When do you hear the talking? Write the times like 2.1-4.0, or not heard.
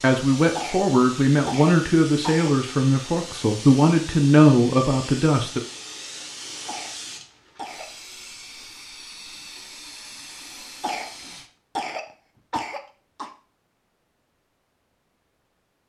0.0-5.6.